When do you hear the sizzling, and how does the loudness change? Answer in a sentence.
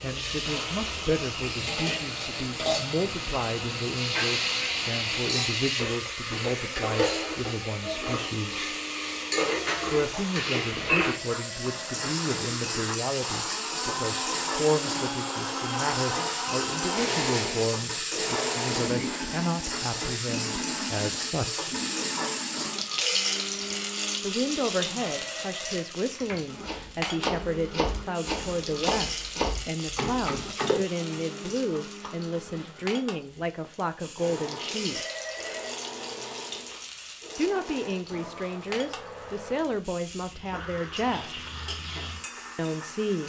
The sizzling can be heard from 0.0 to 43.2 s, getting quieter.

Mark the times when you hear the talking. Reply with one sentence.
The talking can be heard from 0.0 to 8.8 s, from 9.9 to 21.8 s, from 24.2 to 35.0 s, from 37.4 to 41.5 s and from 42.5 to 43.2 s.